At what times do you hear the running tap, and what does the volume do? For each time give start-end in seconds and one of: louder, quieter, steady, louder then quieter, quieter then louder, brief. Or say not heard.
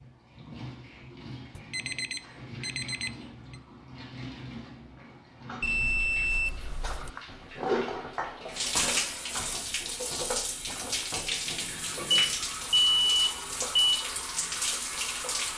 0.0-15.5 louder.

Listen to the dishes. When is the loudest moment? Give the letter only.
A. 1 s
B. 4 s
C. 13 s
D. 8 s
D.